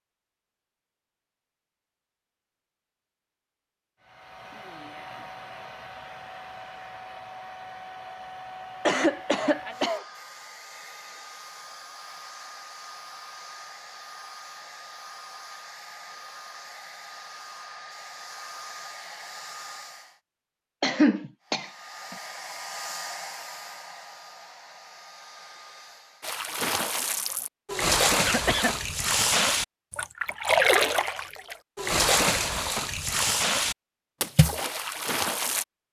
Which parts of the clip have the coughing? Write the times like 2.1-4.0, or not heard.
8.8-10.1, 20.8-22.1, 28.2-28.9.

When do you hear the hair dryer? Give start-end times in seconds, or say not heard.
4.0-20.2, 21.4-26.4.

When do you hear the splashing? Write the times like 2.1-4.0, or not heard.
26.2-35.6.